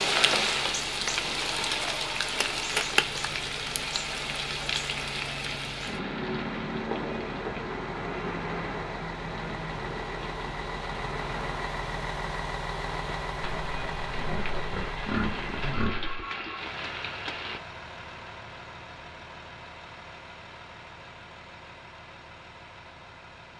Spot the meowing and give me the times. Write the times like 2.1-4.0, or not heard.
not heard.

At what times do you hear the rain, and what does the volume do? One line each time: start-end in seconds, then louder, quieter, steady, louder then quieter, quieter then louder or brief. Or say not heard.
0.0-17.6 quieter.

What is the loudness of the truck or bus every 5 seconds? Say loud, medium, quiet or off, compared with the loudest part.
quiet, medium, loud, medium, medium.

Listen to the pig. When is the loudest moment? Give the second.
15 s.